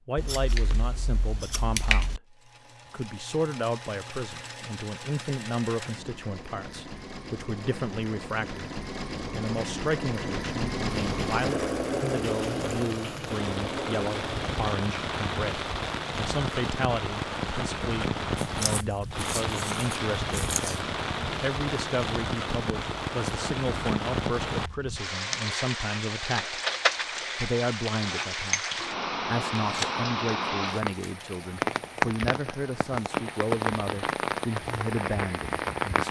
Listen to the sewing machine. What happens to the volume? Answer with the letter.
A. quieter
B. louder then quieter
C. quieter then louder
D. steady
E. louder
E.